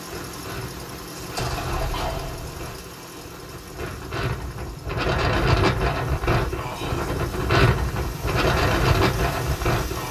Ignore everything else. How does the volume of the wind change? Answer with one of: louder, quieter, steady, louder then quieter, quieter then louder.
louder.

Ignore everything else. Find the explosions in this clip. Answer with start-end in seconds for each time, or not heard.
1.1-2.6.